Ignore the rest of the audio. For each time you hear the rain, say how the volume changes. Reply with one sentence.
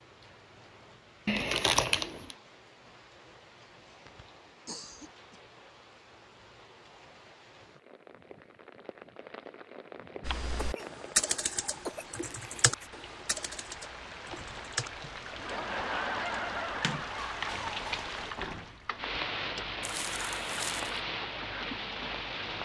The rain can be heard from 0.0 to 22.6 s, getting louder.